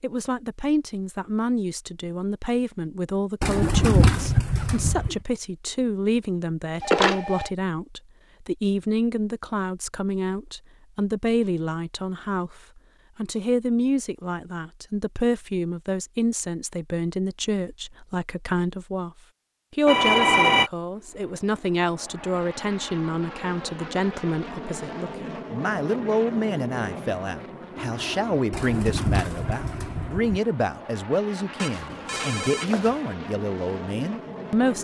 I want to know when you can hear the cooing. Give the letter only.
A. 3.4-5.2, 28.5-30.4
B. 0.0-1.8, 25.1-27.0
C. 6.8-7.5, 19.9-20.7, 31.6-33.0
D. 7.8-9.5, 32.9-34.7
A.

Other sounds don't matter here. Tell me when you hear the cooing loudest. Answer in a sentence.
The loudest moment of the cooing is at 4 seconds.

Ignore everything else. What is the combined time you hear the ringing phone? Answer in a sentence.
The ringing phone can be heard for 3 seconds in total.